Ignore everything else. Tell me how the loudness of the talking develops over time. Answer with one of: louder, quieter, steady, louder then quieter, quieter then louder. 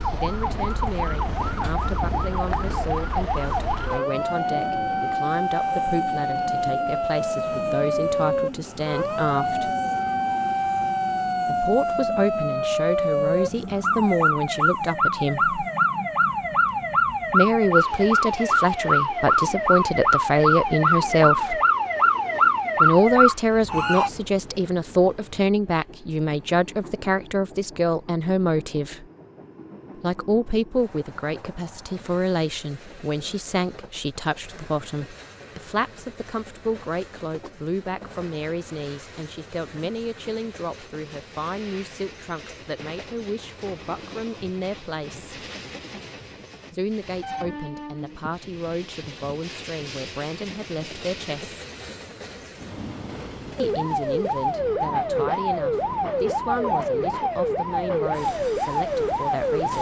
louder then quieter.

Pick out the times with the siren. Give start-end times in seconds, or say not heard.
0.0-24.1, 53.5-59.7.